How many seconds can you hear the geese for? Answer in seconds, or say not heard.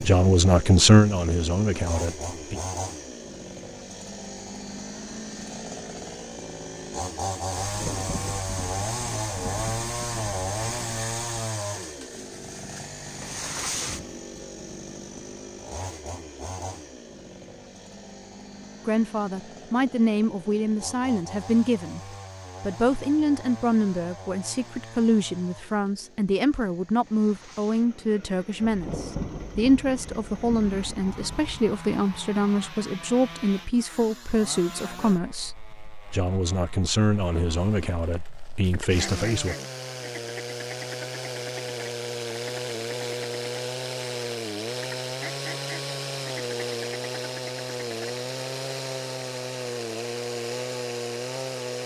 8 s.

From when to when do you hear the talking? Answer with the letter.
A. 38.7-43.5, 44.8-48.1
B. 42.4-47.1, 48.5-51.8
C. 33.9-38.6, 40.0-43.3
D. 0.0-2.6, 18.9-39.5
D.